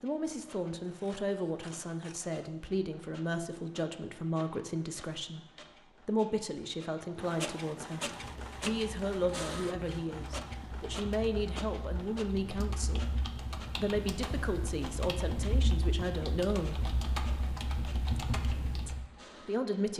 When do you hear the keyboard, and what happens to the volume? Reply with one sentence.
The keyboard can be heard from 8.1 to 19.1 s, getting louder.